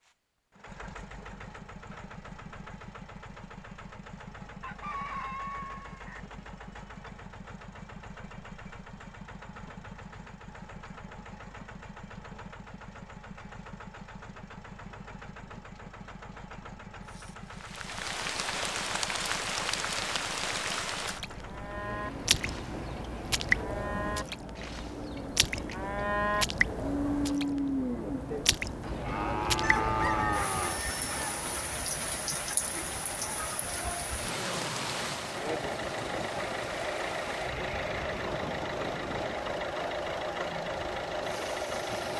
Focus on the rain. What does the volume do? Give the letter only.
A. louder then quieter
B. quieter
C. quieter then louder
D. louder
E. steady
B.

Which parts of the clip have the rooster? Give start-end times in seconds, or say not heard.
4.6-6.2, 29.6-31.1.